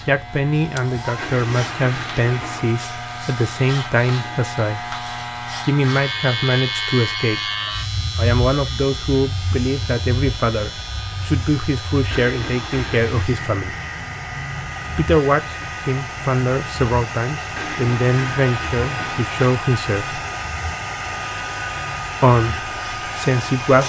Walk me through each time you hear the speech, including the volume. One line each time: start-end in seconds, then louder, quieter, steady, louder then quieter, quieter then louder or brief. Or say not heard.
0.1-5.0 steady
5.6-7.4 brief
8.2-13.8 steady
14.9-20.2 steady
22.2-23.8 brief.